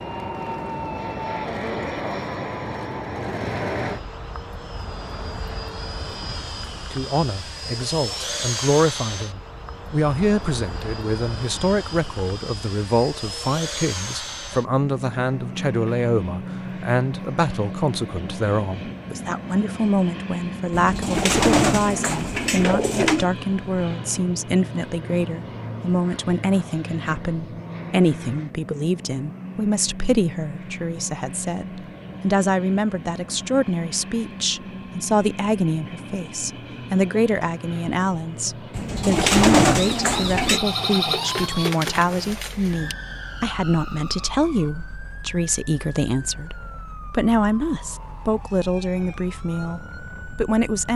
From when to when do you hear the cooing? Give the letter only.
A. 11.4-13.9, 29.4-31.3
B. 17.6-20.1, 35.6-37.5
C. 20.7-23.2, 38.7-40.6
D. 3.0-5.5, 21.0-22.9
C.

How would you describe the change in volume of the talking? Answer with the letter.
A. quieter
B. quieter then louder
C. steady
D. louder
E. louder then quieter
C.